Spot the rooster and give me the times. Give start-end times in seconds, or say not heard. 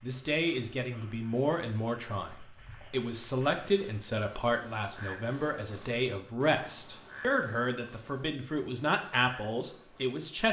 not heard.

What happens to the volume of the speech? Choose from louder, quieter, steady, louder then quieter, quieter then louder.
steady.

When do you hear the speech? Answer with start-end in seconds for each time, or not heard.
0.0-10.4.